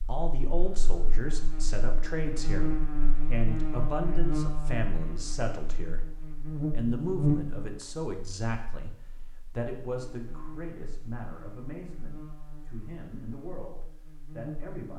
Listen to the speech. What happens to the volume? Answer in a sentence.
The volume of the speech goes down.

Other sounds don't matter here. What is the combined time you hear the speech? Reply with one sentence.
You can hear the speech for 14 seconds altogether.